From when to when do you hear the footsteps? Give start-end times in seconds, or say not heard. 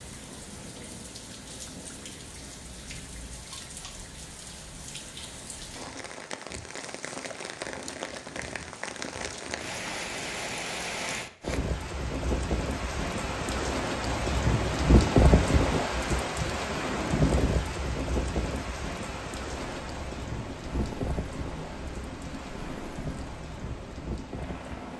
not heard.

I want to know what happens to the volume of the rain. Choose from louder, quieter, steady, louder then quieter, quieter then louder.
louder then quieter.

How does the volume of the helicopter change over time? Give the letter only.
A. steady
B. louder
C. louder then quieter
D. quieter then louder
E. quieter
A.